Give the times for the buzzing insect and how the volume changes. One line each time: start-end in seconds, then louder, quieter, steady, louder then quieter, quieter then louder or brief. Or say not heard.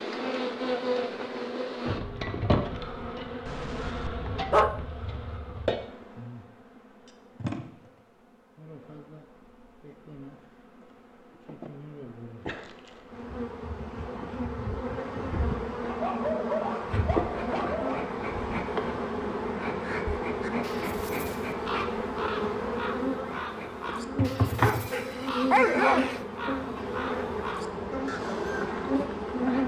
0.0-29.6 quieter then louder.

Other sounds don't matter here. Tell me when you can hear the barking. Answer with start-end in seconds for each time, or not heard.
3.5-4.8, 15.8-18.1, 24.6-26.2.